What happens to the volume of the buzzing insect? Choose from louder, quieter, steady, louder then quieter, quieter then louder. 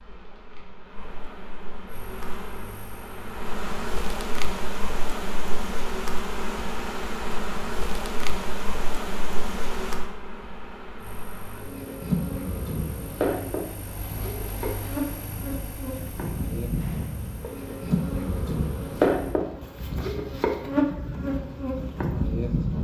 louder.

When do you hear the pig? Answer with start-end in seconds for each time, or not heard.
not heard.